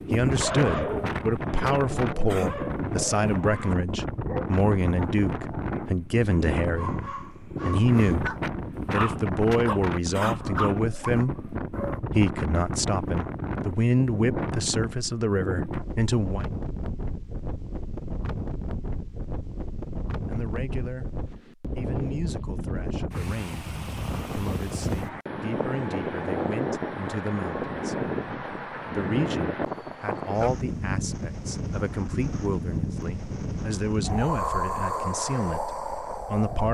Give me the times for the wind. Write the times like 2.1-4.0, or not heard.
0.0-36.6.